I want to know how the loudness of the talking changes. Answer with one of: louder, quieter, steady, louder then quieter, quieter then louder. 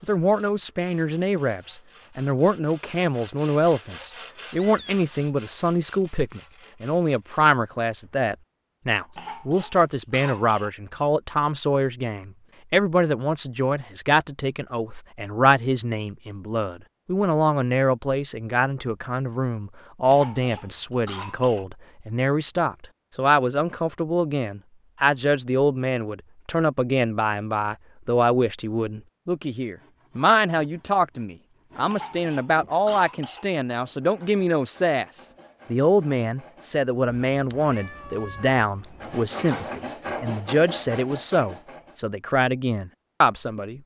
steady.